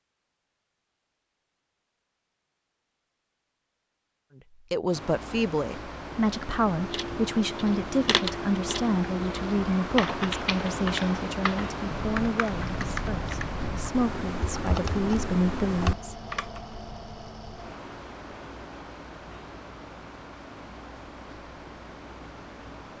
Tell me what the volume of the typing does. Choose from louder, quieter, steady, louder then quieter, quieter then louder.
steady.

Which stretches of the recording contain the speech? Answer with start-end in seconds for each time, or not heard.
4.7-16.1.